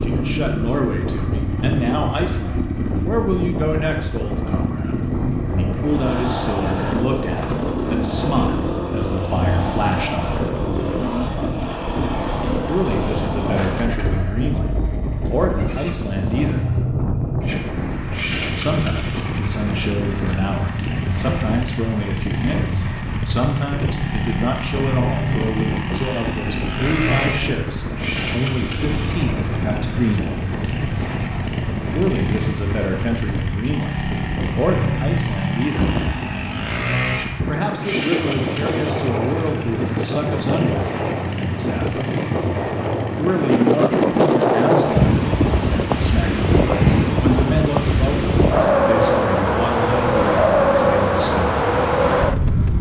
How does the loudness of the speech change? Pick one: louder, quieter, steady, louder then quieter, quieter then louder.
steady.